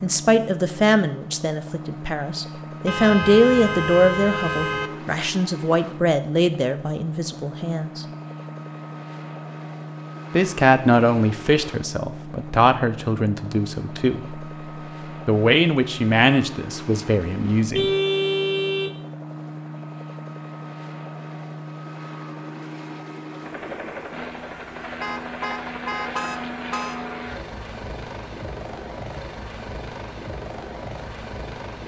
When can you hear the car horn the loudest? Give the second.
18 s.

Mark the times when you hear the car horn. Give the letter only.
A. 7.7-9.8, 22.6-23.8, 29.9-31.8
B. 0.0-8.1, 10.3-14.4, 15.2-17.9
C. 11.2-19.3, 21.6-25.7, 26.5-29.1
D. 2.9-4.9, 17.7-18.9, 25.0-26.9
D.